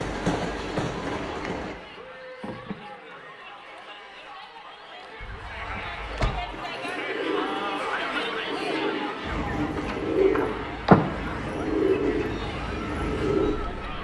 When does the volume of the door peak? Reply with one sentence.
The loudest moment of the door is at 11 seconds.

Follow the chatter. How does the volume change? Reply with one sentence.
The loudness of the chatter goes up, then down.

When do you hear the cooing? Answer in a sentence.
The cooing can be heard from 6.5 to 13.6 s.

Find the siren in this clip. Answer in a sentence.
The siren can't be heard in this clip.